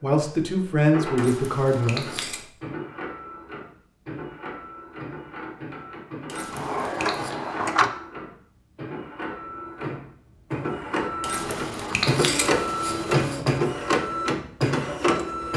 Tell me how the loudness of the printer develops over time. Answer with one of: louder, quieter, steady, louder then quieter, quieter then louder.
louder.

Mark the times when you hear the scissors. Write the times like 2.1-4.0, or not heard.
1.1-2.5, 6.2-7.3, 11.2-13.4.